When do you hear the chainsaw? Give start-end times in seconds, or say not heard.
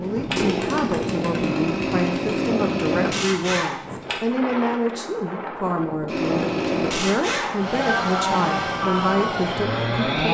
0.0-4.2, 6.0-10.2.